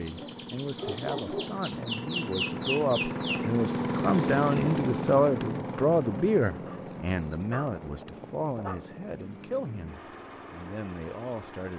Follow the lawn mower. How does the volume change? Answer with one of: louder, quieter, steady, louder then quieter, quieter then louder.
louder then quieter.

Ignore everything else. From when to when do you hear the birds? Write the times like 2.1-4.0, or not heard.
0.0-7.5.